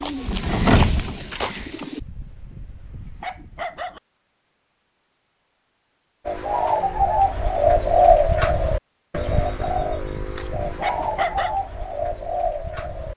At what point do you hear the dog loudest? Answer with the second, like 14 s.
11 s.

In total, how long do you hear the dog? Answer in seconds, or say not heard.
4 s.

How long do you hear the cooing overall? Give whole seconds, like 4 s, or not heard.
9 s.